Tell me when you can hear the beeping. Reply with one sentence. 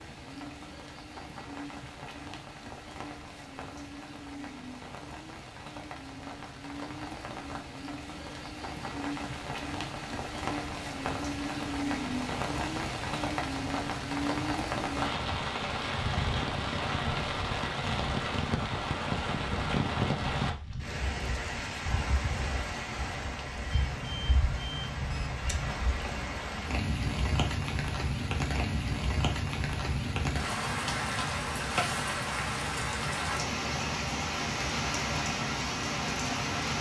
The beeping can be heard from 23.7 to 25.7 s.